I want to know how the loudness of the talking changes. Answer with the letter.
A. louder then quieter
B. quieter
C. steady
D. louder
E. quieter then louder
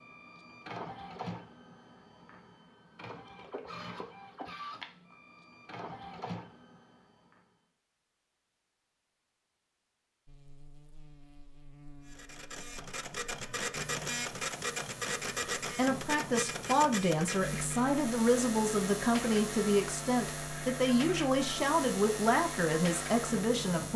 C.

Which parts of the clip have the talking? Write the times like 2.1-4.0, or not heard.
15.6-23.9.